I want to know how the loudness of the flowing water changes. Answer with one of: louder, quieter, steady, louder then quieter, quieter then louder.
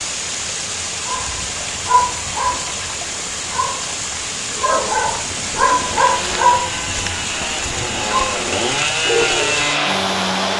steady.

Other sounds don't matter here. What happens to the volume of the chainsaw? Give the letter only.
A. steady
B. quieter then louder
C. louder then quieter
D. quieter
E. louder
E.